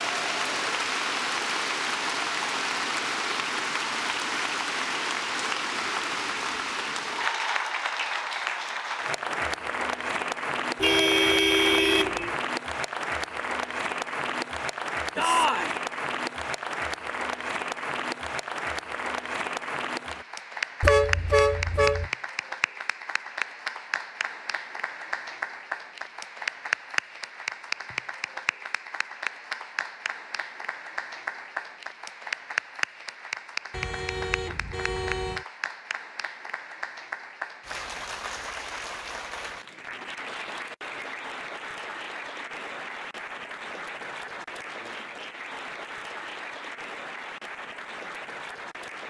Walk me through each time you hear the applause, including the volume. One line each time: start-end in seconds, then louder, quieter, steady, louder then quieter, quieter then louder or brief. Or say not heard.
0.0-49.0 quieter.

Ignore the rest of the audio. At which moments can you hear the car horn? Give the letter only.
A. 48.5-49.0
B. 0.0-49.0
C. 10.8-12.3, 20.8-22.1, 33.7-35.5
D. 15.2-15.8
C.